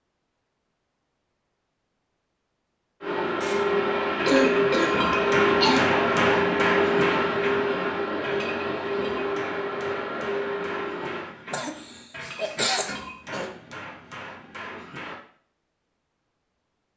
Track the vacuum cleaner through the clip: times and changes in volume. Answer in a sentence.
The vacuum cleaner can be heard from 3.0 to 11.2 s, getting quieter.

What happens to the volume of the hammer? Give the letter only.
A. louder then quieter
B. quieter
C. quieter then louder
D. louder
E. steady
B.